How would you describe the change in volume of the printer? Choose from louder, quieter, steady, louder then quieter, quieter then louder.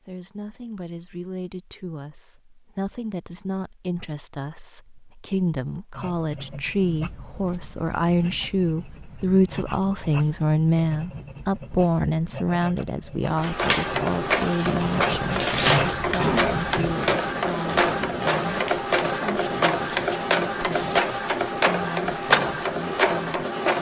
steady.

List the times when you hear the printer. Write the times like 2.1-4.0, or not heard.
13.3-23.7.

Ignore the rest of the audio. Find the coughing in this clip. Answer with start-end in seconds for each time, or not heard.
15.7-16.6.